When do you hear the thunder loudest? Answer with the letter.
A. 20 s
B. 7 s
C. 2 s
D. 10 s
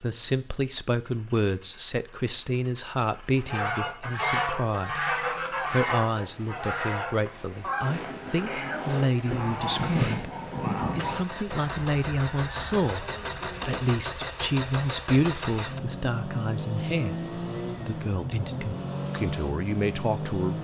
D.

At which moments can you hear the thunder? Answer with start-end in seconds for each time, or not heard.
9.2-11.2.